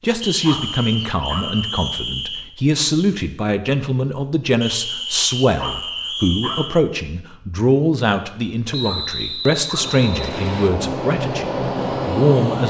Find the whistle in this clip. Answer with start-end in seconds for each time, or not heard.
0.2-2.5, 4.6-6.8, 8.7-10.7.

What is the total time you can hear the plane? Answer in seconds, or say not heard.
3 s.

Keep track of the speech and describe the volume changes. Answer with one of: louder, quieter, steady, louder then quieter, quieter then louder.
steady.